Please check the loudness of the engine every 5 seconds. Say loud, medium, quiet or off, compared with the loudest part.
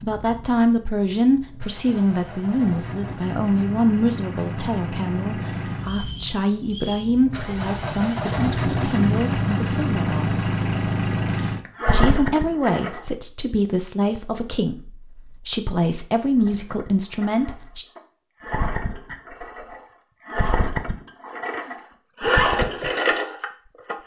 medium, loud, loud, medium, loud.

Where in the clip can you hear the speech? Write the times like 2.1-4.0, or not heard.
0.0-10.6, 11.9-17.9.